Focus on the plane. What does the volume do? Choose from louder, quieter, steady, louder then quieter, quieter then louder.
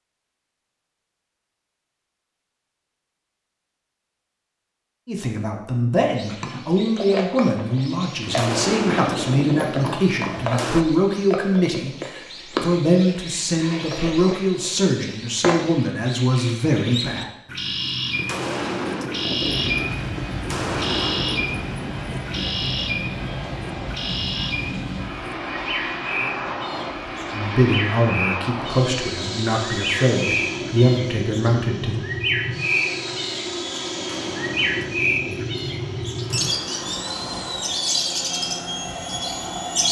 steady.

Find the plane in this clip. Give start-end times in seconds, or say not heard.
19.4-39.8.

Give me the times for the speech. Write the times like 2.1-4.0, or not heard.
5.0-17.3, 27.3-32.0.